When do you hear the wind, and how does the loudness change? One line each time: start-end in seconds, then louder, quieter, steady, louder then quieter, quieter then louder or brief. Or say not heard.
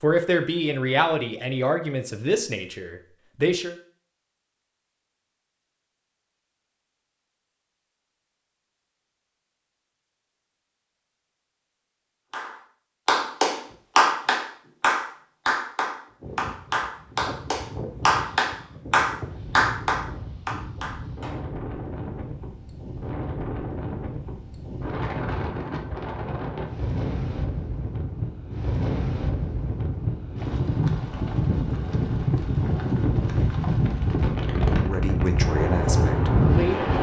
16.2-36.9 louder.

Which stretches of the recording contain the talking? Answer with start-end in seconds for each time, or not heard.
0.0-3.8, 34.8-36.9.